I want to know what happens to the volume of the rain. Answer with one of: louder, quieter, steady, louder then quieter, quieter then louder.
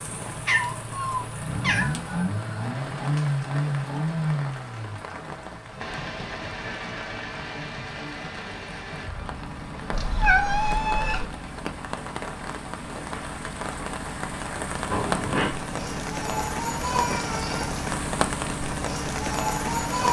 louder.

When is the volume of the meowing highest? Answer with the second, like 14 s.
10 s.